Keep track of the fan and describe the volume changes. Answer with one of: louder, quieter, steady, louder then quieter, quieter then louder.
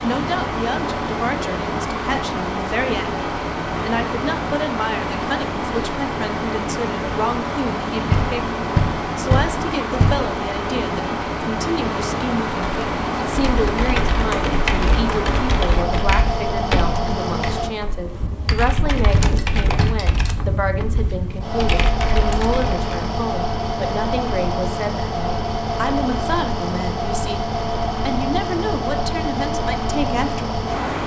steady.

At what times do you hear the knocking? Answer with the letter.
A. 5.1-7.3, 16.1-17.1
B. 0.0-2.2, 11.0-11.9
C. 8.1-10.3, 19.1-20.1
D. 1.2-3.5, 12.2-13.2
C.